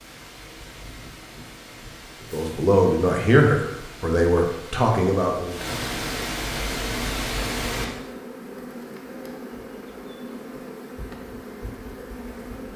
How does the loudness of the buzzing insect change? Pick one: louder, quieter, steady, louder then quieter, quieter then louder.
steady.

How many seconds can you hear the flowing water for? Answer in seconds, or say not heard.
8 s.